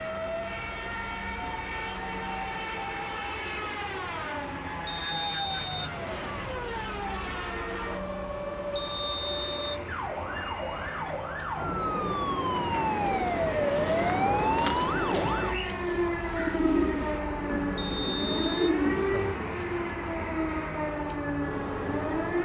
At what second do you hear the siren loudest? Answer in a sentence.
The volume of the siren peaks at 14 seconds.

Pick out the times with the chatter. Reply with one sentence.
You can't hear the chatter here.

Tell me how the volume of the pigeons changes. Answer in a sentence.
The loudness of the pigeons goes up.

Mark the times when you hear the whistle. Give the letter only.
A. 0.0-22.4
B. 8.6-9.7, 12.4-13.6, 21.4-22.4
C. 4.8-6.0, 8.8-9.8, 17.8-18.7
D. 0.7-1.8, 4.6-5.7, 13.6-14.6
C.